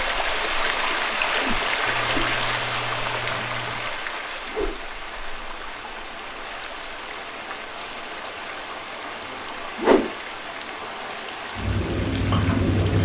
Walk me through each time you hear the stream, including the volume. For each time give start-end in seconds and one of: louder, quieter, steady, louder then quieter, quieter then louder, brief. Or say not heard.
0.0-12.9 quieter.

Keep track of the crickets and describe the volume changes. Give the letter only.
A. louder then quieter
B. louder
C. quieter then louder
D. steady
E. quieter
B.